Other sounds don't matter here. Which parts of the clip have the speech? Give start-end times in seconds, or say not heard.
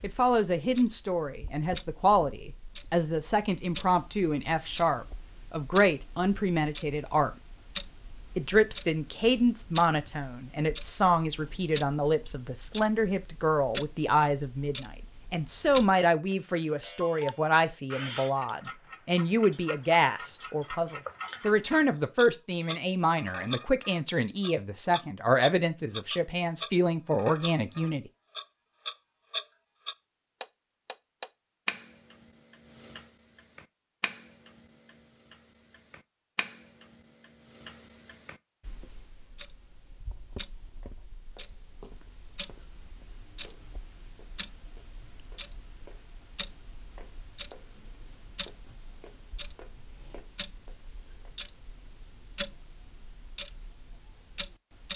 0.0-7.3, 8.3-28.1.